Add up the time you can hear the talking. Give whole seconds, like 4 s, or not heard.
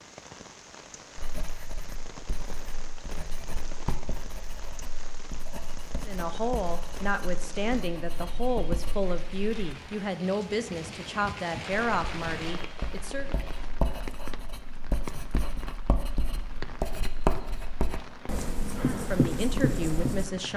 9 s.